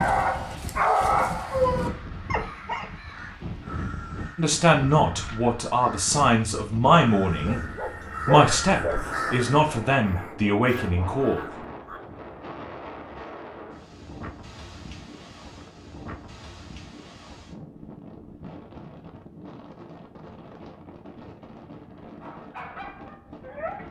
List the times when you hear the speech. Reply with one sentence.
You can hear the speech from 4.3 to 7.6 s and from 8.2 to 11.4 s.